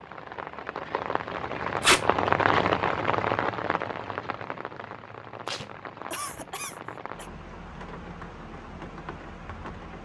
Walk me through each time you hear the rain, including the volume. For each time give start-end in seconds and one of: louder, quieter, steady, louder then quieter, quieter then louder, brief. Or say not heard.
0.0-9.9 louder then quieter.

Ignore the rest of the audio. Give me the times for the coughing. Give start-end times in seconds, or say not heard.
6.1-7.3.